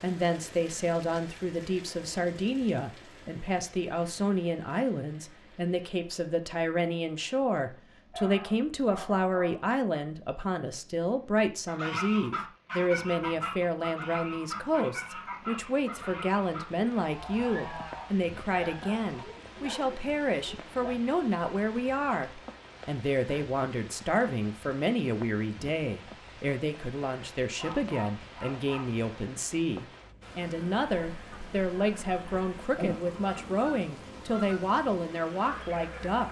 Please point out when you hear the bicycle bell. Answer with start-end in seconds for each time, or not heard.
not heard.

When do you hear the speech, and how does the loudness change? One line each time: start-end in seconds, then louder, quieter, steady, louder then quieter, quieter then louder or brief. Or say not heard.
0.0-36.2 steady.